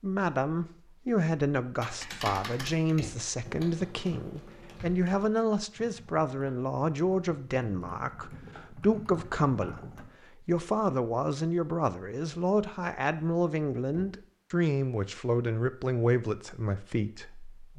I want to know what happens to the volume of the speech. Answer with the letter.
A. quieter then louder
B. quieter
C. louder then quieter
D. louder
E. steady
E.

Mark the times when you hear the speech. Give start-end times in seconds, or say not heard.
0.0-17.7.